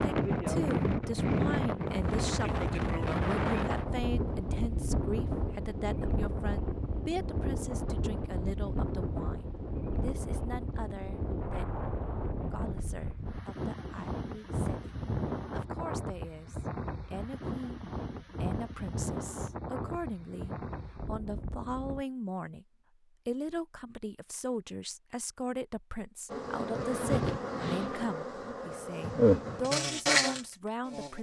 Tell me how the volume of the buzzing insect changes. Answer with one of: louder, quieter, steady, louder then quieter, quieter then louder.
quieter then louder.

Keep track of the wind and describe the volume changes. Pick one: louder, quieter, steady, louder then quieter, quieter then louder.
quieter.